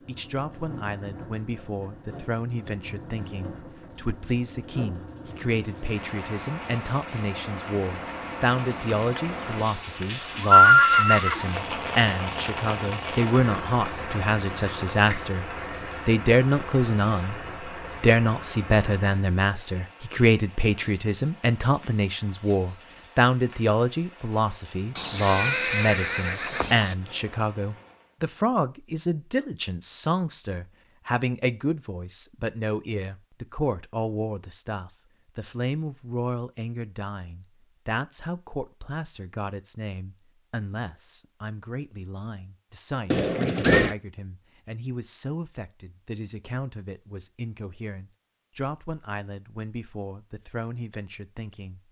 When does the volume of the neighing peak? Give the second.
11 s.